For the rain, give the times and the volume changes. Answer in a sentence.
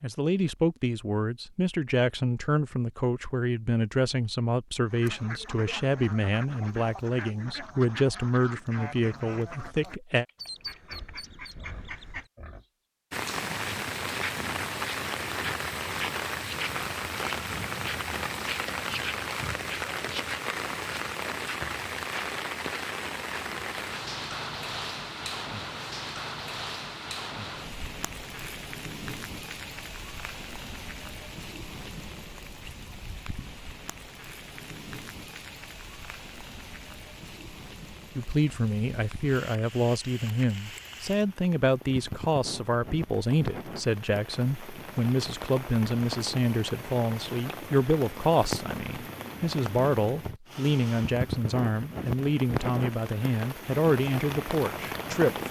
The rain can be heard from 13.1 to 55.4 s, getting quieter then louder.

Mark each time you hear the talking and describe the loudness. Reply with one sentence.
The talking can be heard from 0.0 to 10.2 s, at a steady volume; and from 38.1 to 55.4 s, at a steady volume.